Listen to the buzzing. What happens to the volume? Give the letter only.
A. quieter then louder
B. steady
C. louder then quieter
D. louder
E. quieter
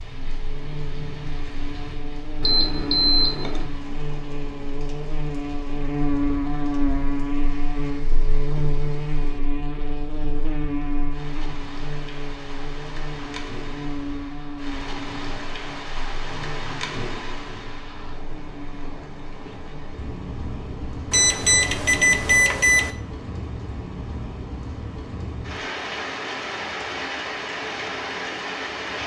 C.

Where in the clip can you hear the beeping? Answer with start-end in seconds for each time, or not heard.
2.4-3.6, 21.1-22.9.